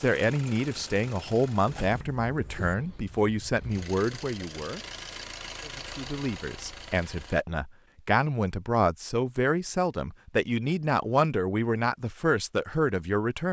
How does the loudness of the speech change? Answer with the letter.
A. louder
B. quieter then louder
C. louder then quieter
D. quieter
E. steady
E.